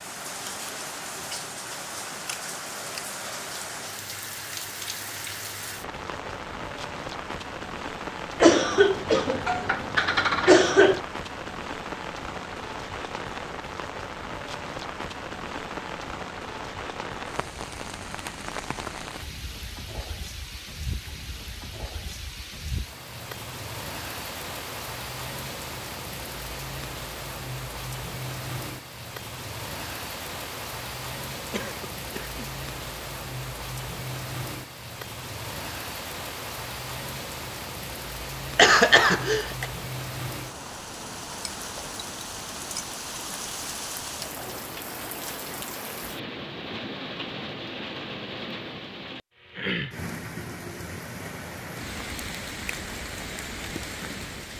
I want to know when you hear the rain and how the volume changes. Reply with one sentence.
The rain can be heard from 0.0 to 54.5 s, at a steady volume.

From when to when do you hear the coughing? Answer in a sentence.
The coughing can be heard from 8.4 to 11.0 s, from 31.5 to 32.5 s and from 38.5 to 39.6 s.